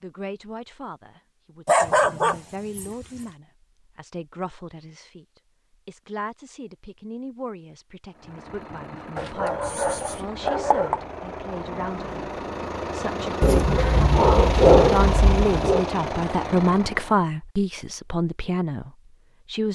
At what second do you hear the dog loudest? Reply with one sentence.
The volume of the dog peaks at 15 seconds.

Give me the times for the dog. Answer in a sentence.
The dog can be heard from 1.6 to 3.2 s, from 9.2 to 11.0 s and from 13.4 to 15.8 s.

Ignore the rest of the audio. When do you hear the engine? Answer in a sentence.
The engine can be heard from 8.1 to 17.2 s.